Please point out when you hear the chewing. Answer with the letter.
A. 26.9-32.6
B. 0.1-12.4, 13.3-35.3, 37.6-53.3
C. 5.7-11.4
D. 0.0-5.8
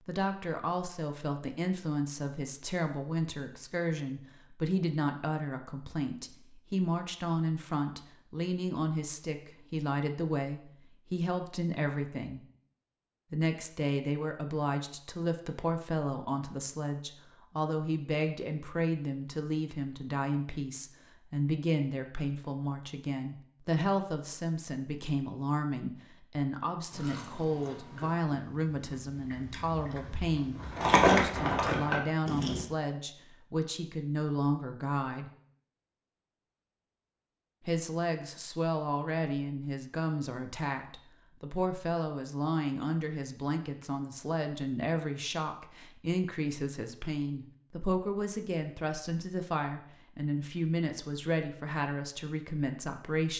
A.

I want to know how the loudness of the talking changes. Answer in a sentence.
The volume of the talking stays about the same.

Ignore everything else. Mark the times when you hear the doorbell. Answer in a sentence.
You can't hear the doorbell here.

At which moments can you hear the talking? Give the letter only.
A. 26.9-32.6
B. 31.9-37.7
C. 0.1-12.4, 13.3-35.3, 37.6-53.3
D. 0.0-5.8
C.